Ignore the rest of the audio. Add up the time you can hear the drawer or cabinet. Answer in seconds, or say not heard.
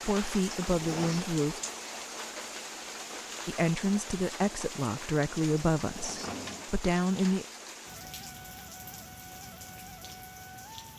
2 s.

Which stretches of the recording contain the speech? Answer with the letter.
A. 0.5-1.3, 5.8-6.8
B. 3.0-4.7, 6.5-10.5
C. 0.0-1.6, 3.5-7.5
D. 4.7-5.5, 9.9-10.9
C.